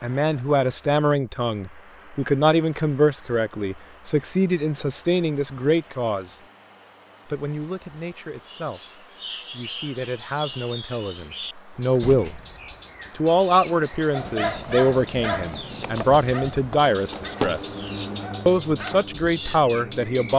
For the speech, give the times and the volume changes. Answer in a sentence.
You can hear the speech from 0.0 to 6.4 s, at a steady volume; from 7.2 to 12.4 s, getting louder; from 13.2 to 17.8 s, getting quieter then louder; and briefly from 18.4 to 20.3 s.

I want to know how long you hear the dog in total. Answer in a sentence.
You can hear the dog for 5 seconds altogether.